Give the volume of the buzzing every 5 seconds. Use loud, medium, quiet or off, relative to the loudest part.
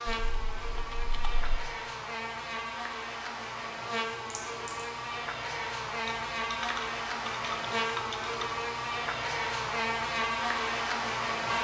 medium, loud, loud.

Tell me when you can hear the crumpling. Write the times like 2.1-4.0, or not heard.
4.3-5.0.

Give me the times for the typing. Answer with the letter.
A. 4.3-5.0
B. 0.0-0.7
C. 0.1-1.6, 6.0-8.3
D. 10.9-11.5
C.